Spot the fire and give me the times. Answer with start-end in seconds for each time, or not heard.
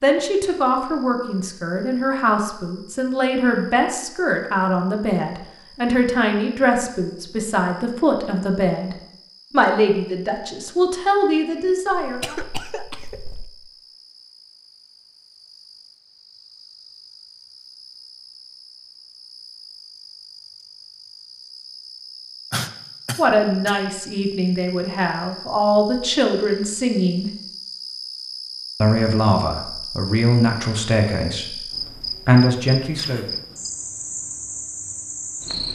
not heard.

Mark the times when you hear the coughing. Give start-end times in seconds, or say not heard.
12.0-13.5, 22.5-23.8.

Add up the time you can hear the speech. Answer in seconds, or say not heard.
21 s.